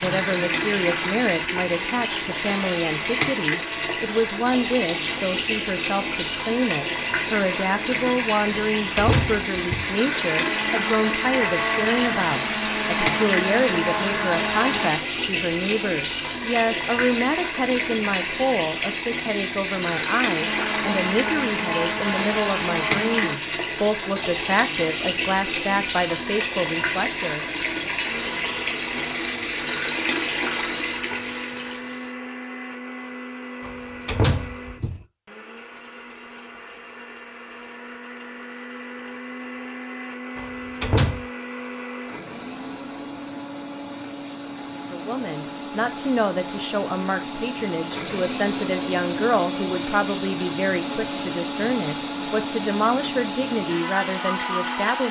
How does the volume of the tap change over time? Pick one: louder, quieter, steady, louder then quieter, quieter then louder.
steady.